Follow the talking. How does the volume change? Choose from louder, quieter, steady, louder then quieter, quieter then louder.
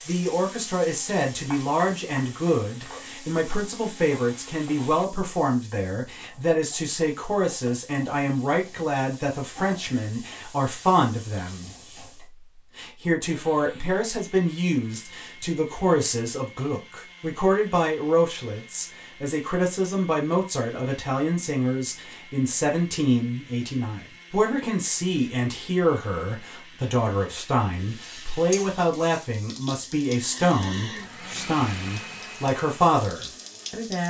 steady.